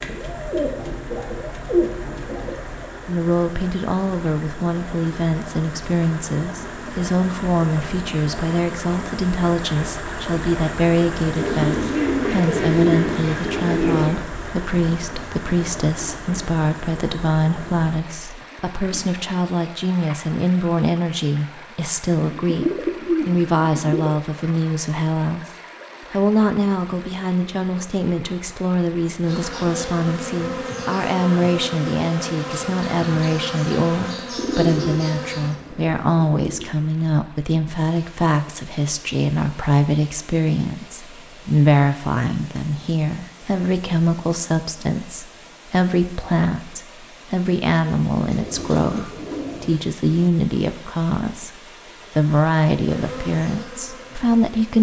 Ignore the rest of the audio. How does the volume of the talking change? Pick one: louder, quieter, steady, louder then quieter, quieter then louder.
steady.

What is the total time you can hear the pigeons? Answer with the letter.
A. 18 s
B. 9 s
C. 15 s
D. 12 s
D.